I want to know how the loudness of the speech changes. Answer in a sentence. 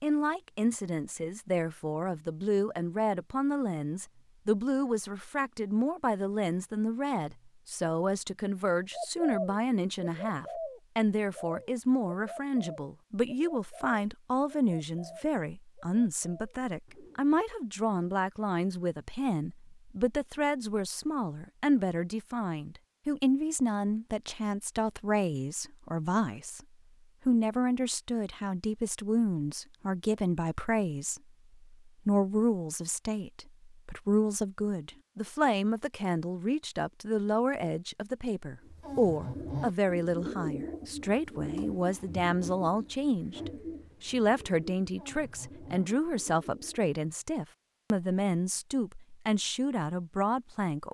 The volume of the speech stays about the same.